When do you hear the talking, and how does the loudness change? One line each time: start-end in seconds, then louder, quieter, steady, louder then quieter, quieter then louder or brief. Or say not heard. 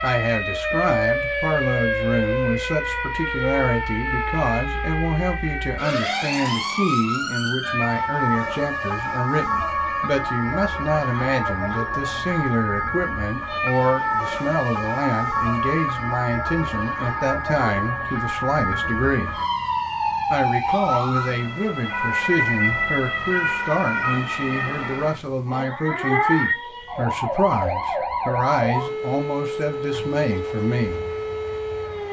0.0-19.4 steady
20.3-31.0 steady.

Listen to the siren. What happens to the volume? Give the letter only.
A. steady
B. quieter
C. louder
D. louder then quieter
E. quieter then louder
A.